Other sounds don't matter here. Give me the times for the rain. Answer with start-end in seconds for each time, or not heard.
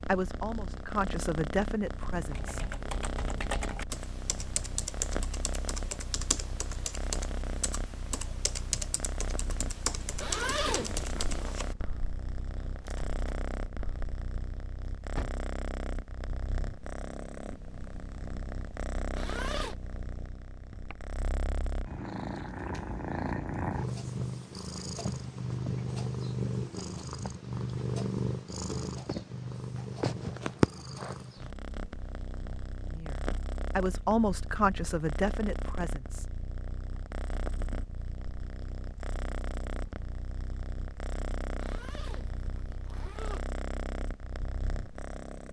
not heard.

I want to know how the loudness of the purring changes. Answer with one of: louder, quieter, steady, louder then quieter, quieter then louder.
louder then quieter.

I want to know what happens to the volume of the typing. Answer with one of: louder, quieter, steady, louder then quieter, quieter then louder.
quieter.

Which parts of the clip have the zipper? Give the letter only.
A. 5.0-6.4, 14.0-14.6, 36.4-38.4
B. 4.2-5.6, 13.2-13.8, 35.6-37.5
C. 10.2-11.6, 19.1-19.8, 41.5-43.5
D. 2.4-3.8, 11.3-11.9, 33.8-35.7
C.